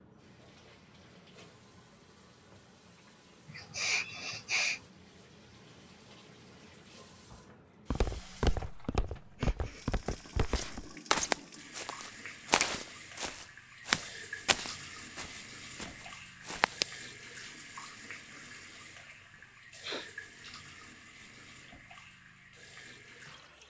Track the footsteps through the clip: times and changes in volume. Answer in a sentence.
You can hear the footsteps from 7.9 to 16.9 s, getting quieter.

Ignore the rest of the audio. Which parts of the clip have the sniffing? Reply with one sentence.
You can hear the sniffing from 3.5 to 4.8 s, from 9.3 to 9.8 s and from 19.3 to 20.1 s.